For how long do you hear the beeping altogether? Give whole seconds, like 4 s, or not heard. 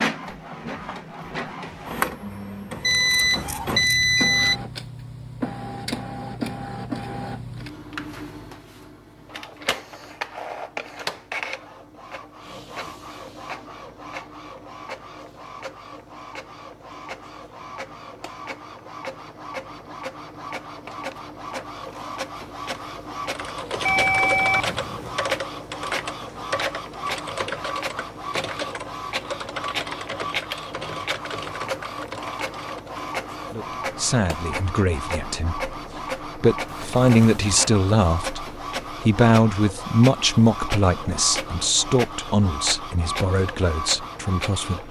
4 s.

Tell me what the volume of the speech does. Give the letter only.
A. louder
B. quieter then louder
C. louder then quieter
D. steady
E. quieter
C.